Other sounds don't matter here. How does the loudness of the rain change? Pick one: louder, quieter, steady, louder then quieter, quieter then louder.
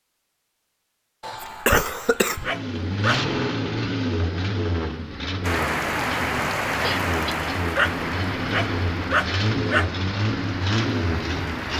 quieter.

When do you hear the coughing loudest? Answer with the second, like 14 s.
2 s.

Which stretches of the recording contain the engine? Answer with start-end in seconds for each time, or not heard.
2.4-11.7.